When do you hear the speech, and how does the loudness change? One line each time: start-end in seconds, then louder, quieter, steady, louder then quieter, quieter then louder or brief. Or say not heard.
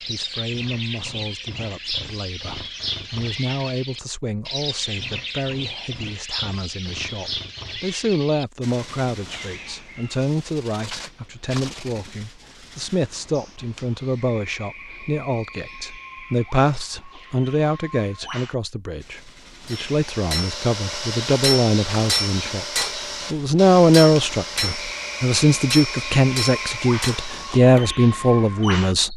0.0-29.1 louder.